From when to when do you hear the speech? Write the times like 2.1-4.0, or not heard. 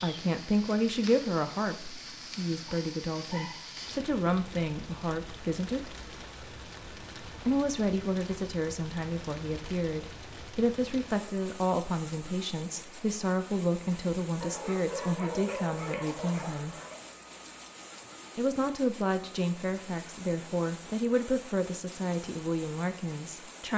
0.0-6.0, 7.4-16.8, 18.4-23.7.